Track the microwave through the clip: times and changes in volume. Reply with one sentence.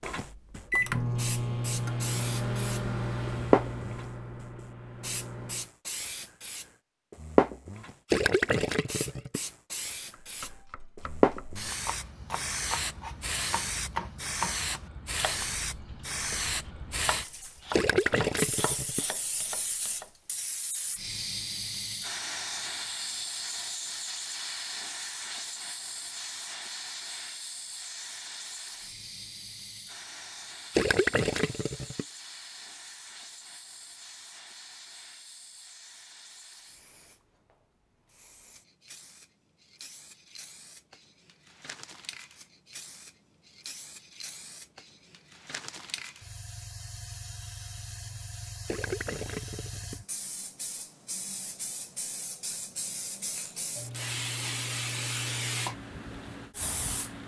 The microwave can be heard from 0.1 to 5.7 s, getting quieter.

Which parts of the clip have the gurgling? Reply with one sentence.
The gurgling can be heard from 8.1 to 9.4 s, from 17.7 to 19.1 s, from 30.8 to 32.0 s and from 48.6 to 50.0 s.